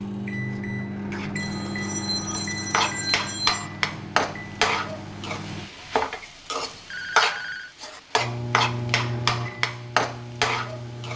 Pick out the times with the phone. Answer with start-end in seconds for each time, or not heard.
1.4-3.6, 6.6-7.8.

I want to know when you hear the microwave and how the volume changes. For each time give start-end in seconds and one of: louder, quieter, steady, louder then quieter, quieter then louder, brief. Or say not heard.
0.0-5.7 quieter
8.2-11.1 brief.